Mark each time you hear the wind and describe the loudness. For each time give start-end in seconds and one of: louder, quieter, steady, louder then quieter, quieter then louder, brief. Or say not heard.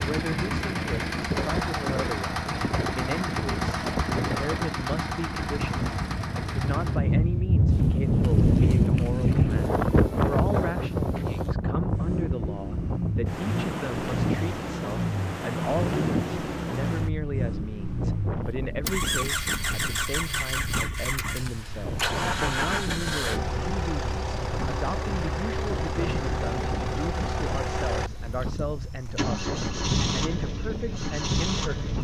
0.0-31.9 louder then quieter.